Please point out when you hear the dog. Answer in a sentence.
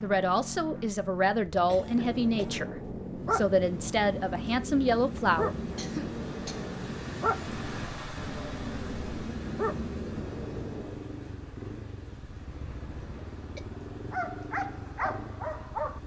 You can hear the dog from 1.6 to 11.2 s and from 14.1 to 16.0 s.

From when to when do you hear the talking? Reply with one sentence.
You can hear the talking from 0.0 to 5.5 s.